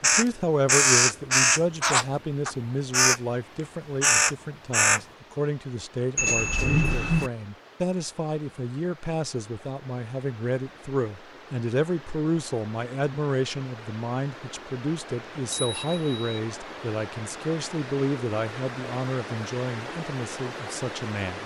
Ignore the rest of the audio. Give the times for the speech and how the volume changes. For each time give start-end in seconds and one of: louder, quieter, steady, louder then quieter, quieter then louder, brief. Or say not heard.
0.0-21.4 steady.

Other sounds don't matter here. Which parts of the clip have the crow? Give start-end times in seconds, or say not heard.
0.0-3.2, 4.0-5.0.